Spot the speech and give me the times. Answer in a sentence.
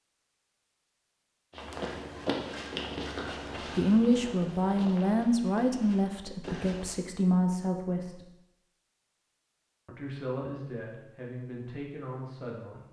You can hear the speech from 3.8 to 8.3 s and from 9.8 to 12.8 s.